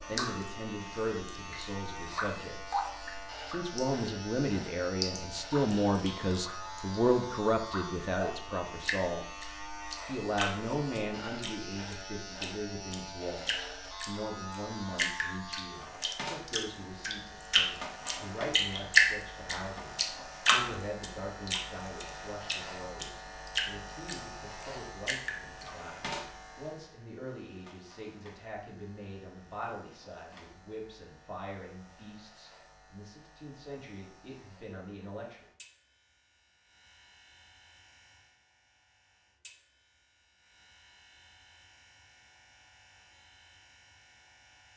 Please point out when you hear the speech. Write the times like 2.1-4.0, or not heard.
0.0-2.9, 3.5-9.2, 10.1-35.5.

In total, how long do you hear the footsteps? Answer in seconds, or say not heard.
not heard.